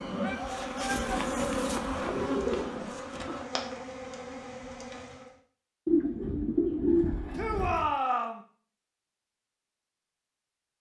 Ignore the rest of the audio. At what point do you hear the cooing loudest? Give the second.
7 s.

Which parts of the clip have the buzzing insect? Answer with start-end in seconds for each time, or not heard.
0.0-5.3.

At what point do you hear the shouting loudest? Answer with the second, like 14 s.
8 s.